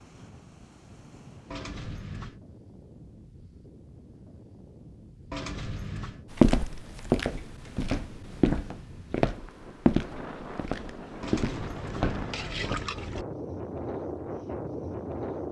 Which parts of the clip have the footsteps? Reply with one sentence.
The footsteps can be heard from 6.3 to 12.8 s.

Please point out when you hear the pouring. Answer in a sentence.
You can hear the pouring from 1.5 to 2.4 s, from 5.3 to 6.2 s and from 11.2 to 13.2 s.